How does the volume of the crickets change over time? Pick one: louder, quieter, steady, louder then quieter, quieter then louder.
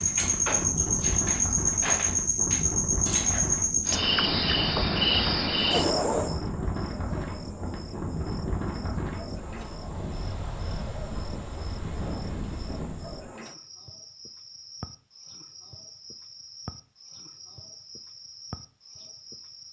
quieter.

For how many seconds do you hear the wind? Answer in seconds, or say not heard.
13 s.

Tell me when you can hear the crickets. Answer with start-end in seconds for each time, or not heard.
0.0-19.6.